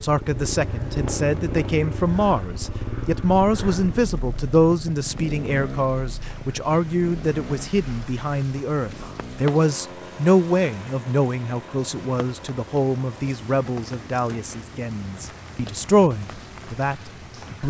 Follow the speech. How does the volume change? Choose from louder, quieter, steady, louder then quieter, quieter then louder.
steady.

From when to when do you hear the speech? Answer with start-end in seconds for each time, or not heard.
0.0-17.6.